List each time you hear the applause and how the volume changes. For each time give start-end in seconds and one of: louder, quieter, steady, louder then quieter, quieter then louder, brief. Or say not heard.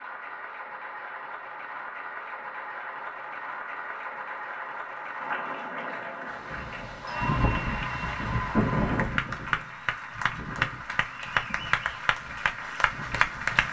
0.0-13.6 louder.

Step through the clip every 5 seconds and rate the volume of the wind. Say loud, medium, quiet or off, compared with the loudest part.
off, loud, quiet.